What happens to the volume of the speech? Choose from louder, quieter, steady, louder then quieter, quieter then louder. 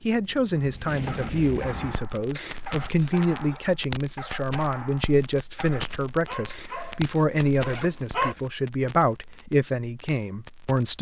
steady.